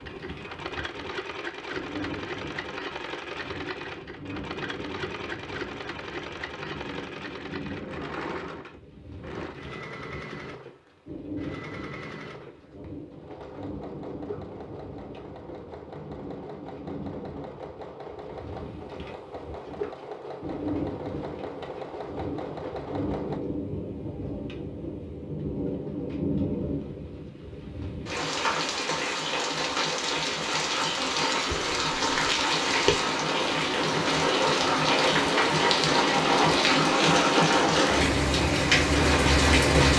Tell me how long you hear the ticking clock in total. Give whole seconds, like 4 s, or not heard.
not heard.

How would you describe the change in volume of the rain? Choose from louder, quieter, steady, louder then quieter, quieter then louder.
louder.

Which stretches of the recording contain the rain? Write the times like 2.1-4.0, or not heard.
0.0-39.9.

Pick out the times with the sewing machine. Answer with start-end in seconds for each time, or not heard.
0.0-23.4.